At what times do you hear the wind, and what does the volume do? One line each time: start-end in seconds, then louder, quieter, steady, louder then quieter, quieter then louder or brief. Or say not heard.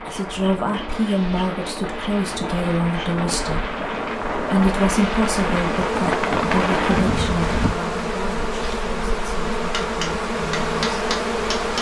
0.0-7.8 louder.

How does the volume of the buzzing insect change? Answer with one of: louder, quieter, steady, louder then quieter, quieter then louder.
louder.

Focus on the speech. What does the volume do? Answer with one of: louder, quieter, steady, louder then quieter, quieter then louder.
quieter.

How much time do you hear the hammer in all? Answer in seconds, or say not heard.
2 s.